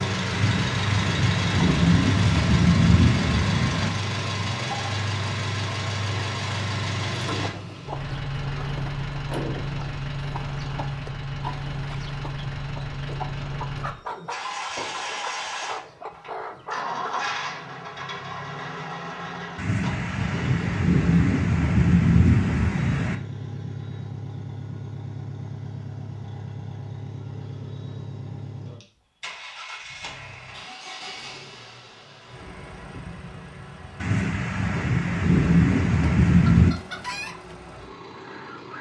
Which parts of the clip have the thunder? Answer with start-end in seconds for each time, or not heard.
0.3-3.9, 19.6-23.1, 34.0-36.8.